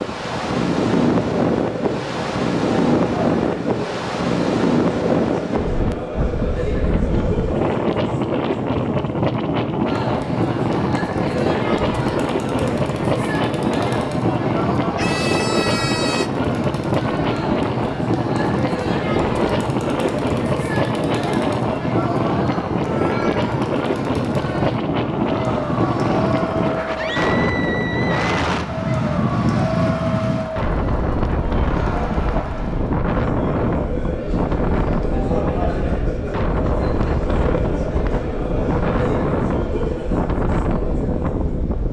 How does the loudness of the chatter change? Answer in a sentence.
The volume of the chatter stays about the same.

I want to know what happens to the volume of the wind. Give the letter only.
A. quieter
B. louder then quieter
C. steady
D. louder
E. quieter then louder
C.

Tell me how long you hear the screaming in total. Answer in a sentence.
You can hear the screaming for 3 seconds altogether.